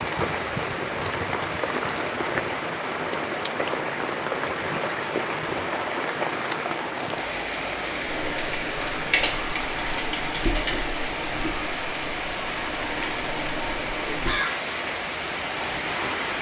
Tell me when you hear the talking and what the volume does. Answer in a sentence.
The talking can't be heard in this clip.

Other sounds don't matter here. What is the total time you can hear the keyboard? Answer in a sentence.
The keyboard can be heard for 6 seconds in total.